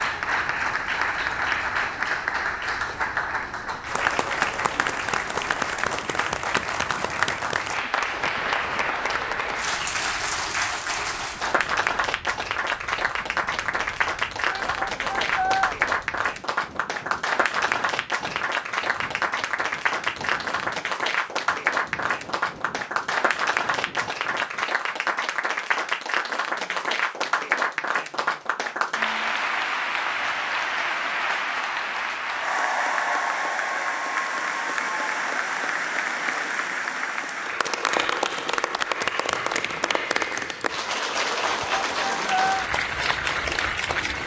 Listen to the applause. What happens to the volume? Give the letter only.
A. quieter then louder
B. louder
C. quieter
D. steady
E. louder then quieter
D.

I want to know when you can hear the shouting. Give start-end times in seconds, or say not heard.
14.5-15.8, 41.5-42.6.